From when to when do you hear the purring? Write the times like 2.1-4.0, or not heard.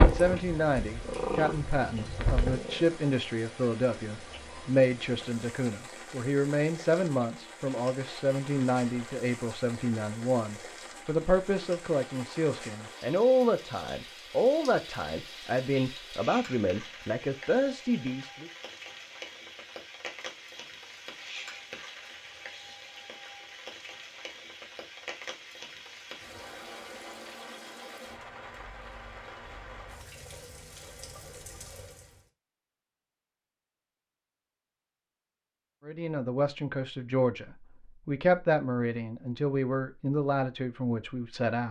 0.0-2.9.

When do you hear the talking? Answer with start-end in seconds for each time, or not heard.
0.0-18.5, 35.9-41.6.